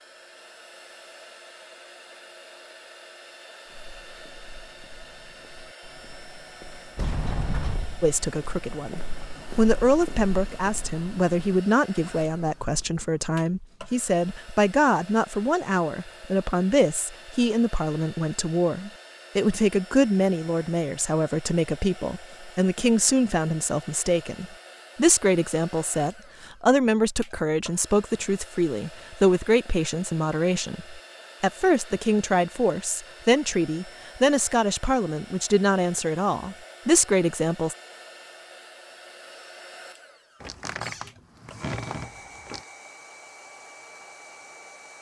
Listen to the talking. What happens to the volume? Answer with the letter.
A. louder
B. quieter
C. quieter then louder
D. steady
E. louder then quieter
D.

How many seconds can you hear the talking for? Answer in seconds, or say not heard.
30 s.